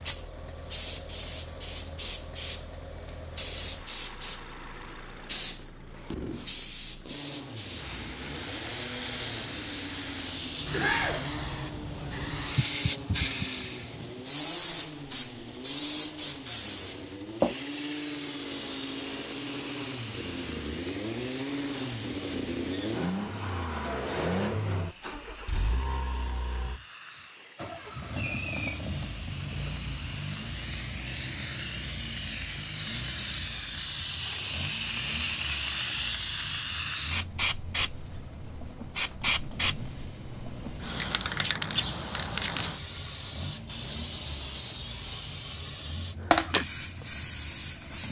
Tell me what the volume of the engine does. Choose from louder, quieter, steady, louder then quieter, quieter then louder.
louder then quieter.